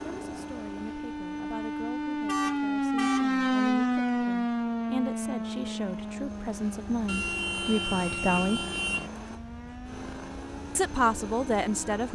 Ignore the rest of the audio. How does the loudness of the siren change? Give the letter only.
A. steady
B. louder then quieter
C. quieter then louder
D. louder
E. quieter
B.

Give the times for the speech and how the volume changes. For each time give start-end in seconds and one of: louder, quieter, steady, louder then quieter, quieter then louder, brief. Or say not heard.
0.1-8.6 louder
10.8-12.1 brief.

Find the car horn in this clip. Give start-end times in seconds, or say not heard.
2.2-3.3, 7.0-9.1.